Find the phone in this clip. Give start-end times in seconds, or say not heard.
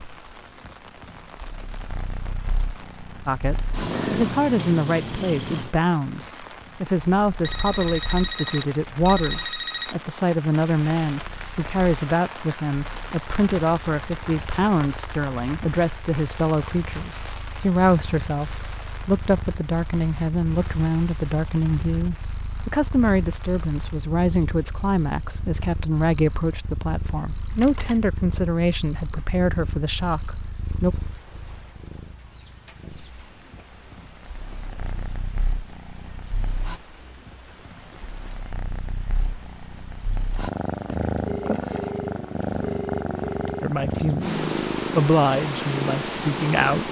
7.4-9.9, 27.6-28.1, 41.2-43.6.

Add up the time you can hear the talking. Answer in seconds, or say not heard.
31 s.